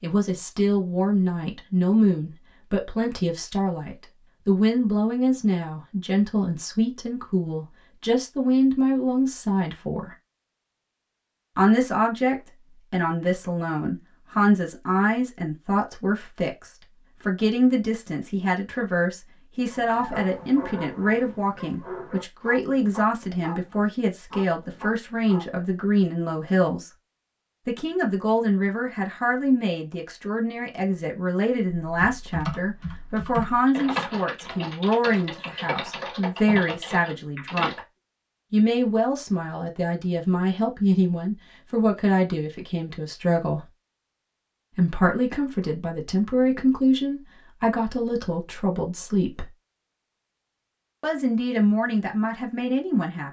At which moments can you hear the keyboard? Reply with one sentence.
The keyboard can be heard from 31.9 to 37.9 s.